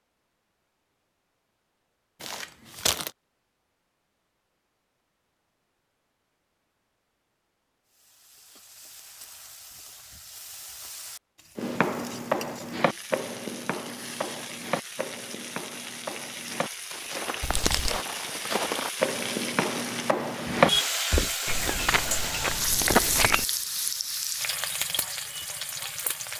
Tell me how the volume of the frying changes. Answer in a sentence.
The volume of the frying goes up.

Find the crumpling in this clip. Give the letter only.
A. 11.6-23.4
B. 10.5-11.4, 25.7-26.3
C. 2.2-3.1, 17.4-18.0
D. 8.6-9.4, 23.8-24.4
C.